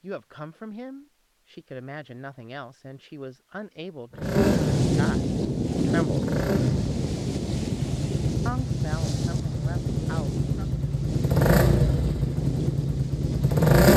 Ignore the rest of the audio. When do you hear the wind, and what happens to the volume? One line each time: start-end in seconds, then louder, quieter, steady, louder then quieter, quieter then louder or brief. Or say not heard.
4.2-13.7 quieter.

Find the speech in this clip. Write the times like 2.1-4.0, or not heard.
0.0-6.2, 8.4-10.7.